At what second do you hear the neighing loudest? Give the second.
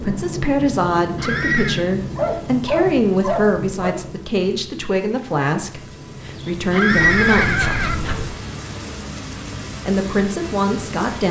7 s.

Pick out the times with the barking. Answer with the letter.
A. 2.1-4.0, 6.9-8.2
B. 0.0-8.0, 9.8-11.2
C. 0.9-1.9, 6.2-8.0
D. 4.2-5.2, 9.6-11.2
A.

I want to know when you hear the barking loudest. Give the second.
3 s.